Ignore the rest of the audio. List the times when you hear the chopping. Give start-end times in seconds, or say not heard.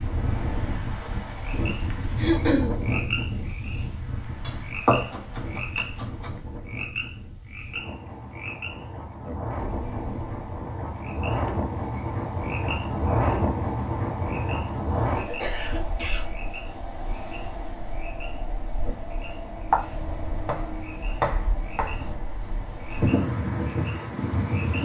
4.5-6.4, 19.7-22.1.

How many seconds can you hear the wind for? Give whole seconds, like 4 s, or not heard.
25 s.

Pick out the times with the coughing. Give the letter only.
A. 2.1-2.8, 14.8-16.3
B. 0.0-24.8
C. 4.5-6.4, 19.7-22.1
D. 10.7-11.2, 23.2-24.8
A.